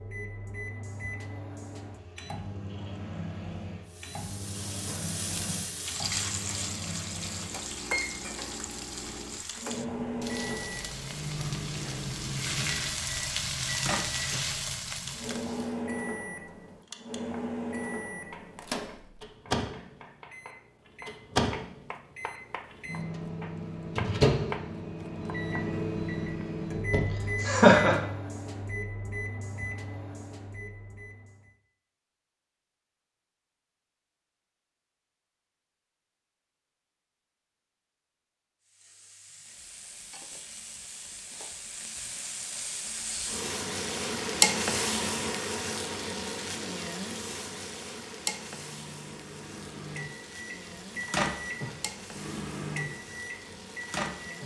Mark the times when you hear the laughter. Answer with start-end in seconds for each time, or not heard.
26.9-28.0.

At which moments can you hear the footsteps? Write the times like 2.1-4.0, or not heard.
not heard.